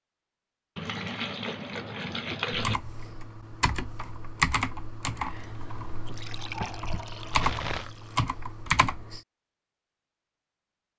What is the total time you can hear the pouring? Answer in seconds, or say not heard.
4 s.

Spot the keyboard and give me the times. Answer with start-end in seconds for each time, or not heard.
2.5-9.2.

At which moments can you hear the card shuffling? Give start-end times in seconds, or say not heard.
6.0-7.9.